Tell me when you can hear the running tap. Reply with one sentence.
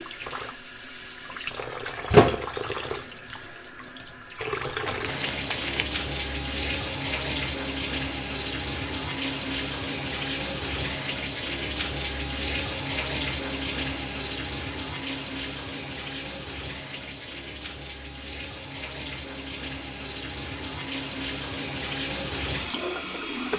You can hear the running tap from 0.0 to 23.5 s.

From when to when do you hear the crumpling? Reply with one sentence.
The crumpling can be heard from 4.8 to 5.8 s.